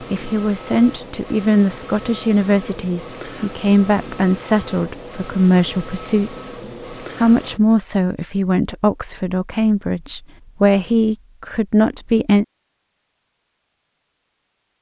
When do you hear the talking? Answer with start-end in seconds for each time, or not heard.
0.0-6.5, 7.2-12.4.